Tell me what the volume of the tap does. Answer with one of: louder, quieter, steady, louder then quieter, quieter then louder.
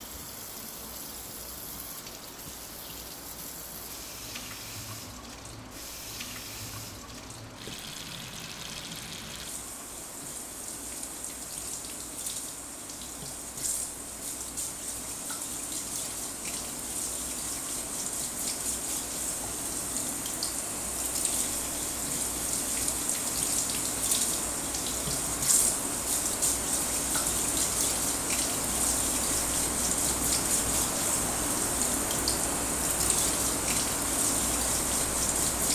louder.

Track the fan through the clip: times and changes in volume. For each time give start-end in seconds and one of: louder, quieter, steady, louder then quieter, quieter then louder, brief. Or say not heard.
0.0-35.7 louder.